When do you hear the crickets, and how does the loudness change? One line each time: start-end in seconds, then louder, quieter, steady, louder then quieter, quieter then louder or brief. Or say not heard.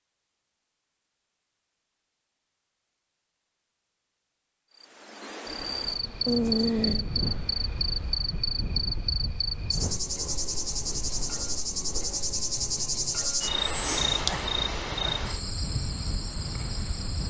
4.7-17.2 louder then quieter.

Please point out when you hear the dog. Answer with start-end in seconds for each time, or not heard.
not heard.